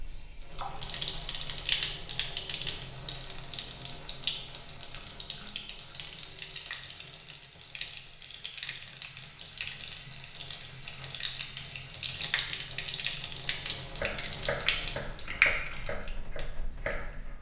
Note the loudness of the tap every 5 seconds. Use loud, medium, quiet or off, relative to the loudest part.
loud, medium, loud, loud.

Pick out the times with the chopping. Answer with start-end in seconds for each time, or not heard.
13.9-17.3.